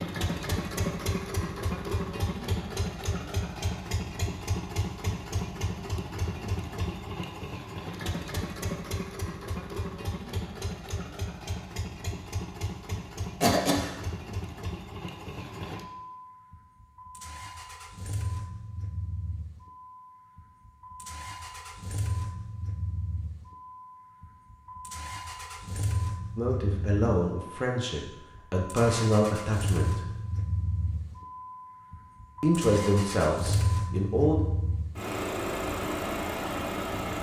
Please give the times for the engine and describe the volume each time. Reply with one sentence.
The engine can be heard from 0.0 to 37.1 s, getting quieter then louder.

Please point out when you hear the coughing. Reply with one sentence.
The coughing can be heard from 13.4 to 13.9 s.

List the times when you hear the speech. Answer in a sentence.
You can hear the speech from 26.4 to 30.1 s and from 32.4 to 34.4 s.